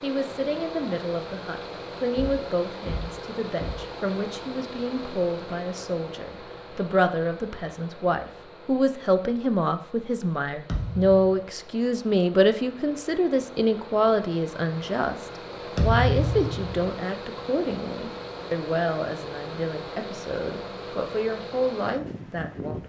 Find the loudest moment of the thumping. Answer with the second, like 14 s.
16 s.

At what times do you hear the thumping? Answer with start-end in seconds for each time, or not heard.
2.1-3.8, 10.7-11.4, 15.8-16.9.